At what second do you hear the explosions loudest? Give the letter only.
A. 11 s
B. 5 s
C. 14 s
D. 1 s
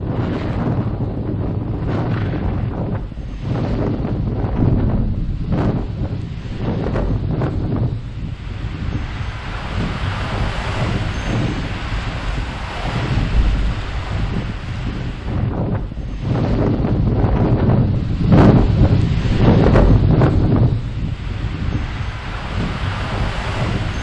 B.